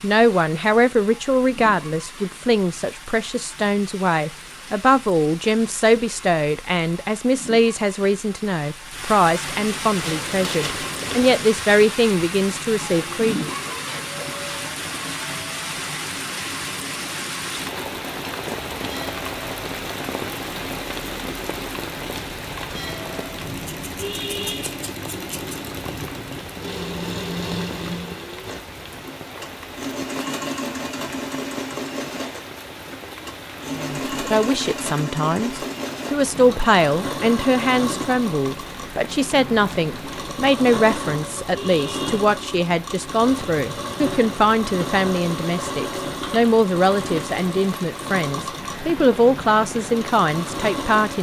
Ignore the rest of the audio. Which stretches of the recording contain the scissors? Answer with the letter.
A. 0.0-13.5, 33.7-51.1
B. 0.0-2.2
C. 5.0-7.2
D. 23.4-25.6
D.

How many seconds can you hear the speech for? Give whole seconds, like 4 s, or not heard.
31 s.